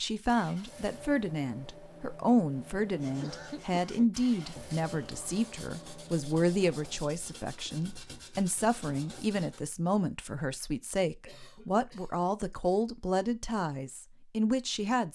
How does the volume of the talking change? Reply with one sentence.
The volume of the talking stays about the same.